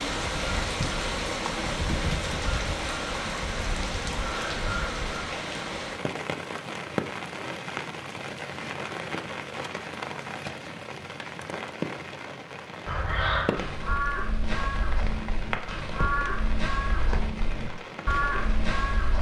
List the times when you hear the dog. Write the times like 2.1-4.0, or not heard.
not heard.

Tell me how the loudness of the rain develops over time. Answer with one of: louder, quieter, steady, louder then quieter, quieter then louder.
quieter.